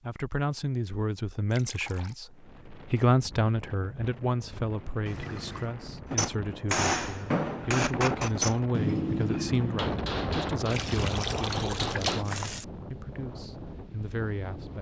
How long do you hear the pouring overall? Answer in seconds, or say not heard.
3 s.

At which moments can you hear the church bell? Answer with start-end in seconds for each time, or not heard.
not heard.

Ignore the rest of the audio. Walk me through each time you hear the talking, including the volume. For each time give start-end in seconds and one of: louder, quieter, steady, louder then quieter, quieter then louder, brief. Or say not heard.
0.0-14.7 quieter.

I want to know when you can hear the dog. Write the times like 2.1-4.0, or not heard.
not heard.